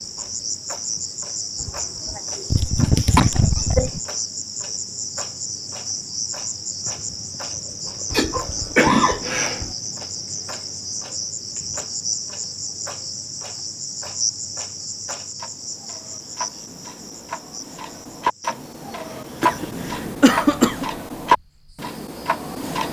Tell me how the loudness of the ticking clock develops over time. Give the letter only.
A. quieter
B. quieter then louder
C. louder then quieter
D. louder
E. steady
D.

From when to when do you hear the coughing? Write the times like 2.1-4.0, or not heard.
1.6-4.0, 8.1-9.8, 19.4-20.9.